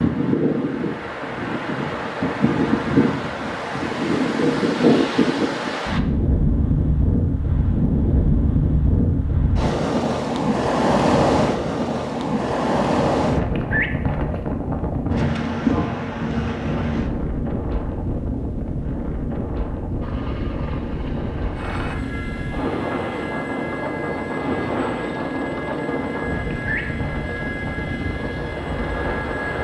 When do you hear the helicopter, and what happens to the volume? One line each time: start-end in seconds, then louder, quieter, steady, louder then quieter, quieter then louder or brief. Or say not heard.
20.0-29.5 steady.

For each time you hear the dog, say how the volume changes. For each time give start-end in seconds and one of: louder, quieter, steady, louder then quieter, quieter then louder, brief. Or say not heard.
not heard.